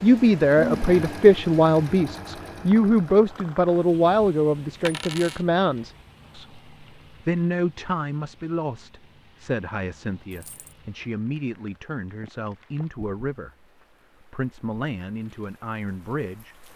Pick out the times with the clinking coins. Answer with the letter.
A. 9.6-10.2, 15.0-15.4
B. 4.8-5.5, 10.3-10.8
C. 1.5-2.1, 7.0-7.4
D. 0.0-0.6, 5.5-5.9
B.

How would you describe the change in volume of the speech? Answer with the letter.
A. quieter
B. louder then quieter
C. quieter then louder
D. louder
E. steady
A.